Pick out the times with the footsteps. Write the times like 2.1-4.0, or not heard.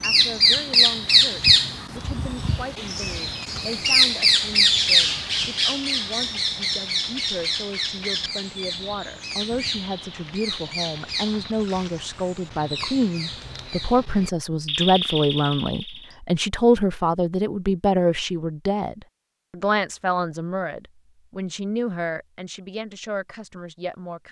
not heard.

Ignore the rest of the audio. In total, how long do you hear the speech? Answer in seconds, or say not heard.
24 s.